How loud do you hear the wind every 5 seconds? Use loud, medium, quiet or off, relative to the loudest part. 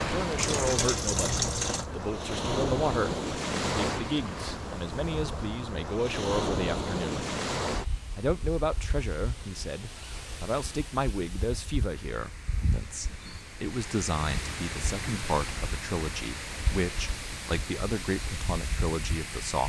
loud, loud, medium, medium.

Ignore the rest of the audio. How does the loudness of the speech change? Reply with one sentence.
The loudness of the speech stays about the same.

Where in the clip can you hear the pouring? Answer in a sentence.
You can hear the pouring from 0.3 to 1.9 s.